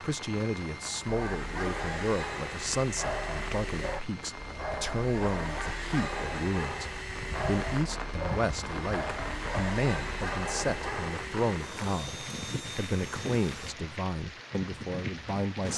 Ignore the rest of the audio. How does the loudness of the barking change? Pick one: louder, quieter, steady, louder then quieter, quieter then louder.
steady.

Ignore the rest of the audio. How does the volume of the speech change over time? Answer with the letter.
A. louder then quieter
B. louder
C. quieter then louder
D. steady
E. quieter
D.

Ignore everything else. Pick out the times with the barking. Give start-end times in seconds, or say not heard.
1.1-11.2.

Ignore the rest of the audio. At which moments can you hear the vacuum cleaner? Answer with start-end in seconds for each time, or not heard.
0.0-13.8.